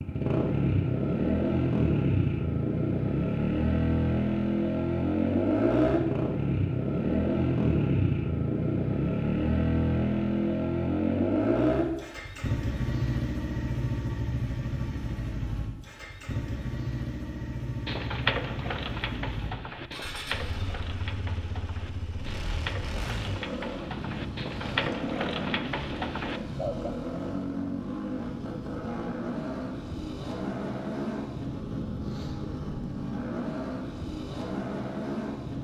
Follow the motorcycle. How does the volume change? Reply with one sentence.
The volume of the motorcycle goes down.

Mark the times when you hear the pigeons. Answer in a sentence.
The pigeons can be heard from 17.9 to 26.9 s.